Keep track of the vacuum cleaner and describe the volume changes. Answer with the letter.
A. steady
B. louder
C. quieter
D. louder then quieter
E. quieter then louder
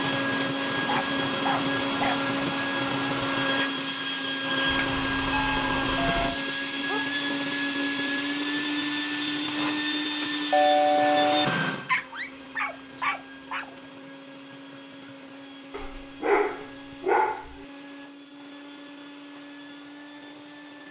C.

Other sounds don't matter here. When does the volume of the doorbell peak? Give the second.
11 s.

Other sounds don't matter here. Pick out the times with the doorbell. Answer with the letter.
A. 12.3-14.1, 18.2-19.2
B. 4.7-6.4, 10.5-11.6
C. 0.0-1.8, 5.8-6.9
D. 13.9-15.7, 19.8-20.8
B.